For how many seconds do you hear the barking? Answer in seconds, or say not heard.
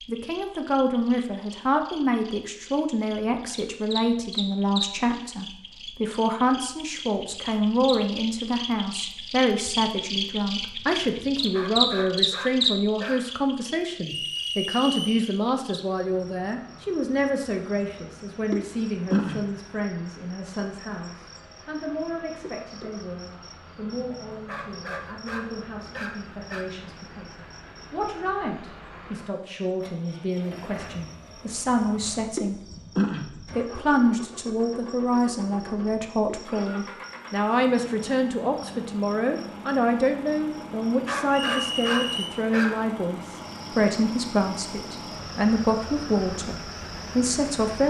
6 s.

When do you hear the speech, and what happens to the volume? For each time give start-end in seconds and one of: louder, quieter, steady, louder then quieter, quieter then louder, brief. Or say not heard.
0.1-47.8 quieter then louder.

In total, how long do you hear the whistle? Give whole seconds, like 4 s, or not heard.
2 s.